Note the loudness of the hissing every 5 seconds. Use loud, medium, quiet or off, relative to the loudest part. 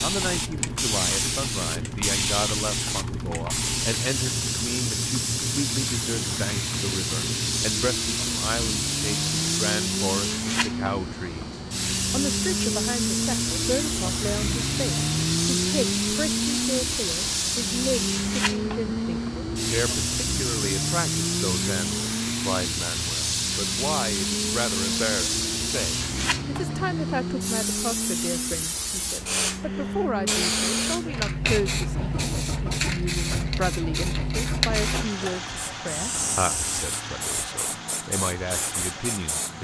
loud, loud, loud, loud, loud, loud, loud, medium.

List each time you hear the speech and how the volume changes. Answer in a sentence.
The speech can be heard from 0.0 to 39.6 s, at a steady volume.